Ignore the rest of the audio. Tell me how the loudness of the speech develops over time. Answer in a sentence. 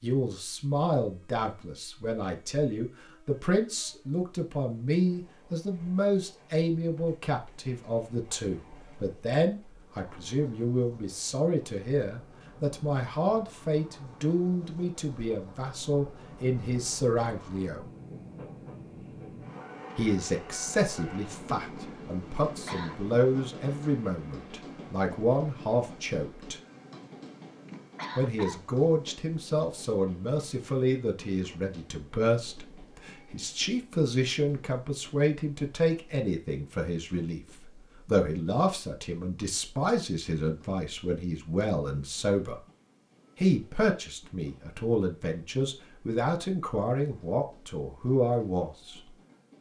The loudness of the speech stays about the same.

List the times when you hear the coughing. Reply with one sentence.
You can hear the coughing from 22.4 to 23.0 s and from 27.6 to 28.6 s.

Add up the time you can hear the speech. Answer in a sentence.
The speech can be heard for 45 seconds in total.